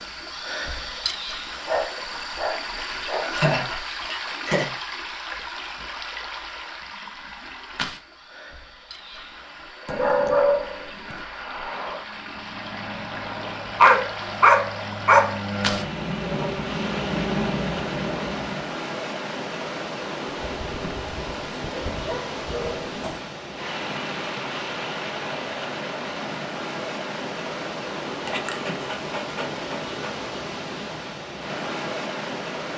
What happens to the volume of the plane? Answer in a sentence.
The volume of the plane goes up.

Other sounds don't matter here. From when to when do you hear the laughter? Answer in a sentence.
You can hear the laughter from 3.3 to 4.7 s.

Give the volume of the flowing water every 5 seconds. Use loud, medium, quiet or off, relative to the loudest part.
loud, medium, medium, loud, loud, loud, loud.